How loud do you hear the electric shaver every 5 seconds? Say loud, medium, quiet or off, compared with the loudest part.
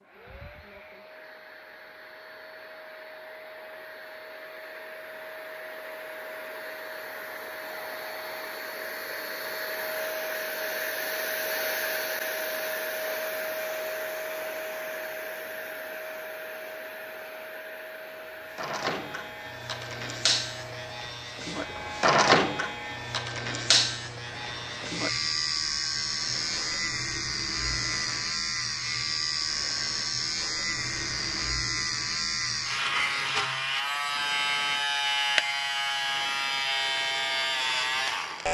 off, off, off, medium, loud, loud, loud, loud.